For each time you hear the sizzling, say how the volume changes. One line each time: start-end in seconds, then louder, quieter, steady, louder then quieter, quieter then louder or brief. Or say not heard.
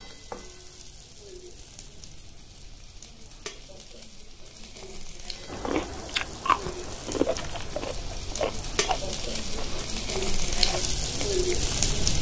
0.0-12.1 louder.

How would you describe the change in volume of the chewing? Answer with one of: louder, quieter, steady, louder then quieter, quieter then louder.
quieter.